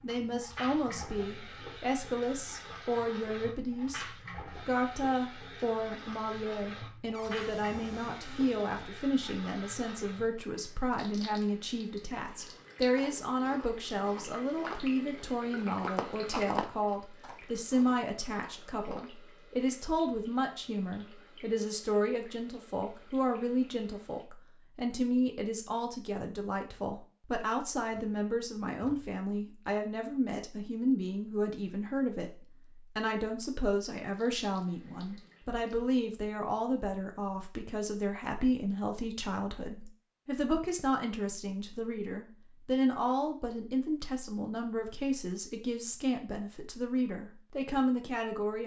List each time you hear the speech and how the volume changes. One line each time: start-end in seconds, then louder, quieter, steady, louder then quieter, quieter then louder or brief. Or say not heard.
0.0-48.6 steady.